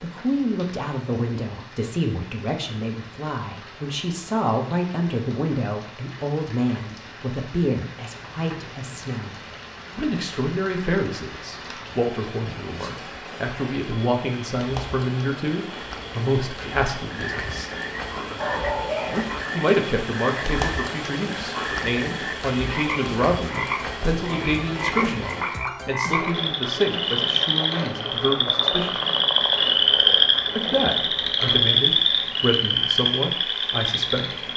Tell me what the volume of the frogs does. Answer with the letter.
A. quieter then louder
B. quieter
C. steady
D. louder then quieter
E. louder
E.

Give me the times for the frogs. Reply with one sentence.
You can hear the frogs from 17.1 to 34.5 s.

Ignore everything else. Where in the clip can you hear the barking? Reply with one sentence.
You can hear the barking from 18.4 to 19.2 s.